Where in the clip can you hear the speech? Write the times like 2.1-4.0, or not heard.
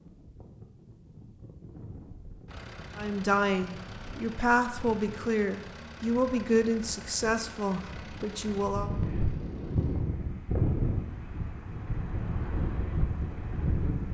3.0-8.9.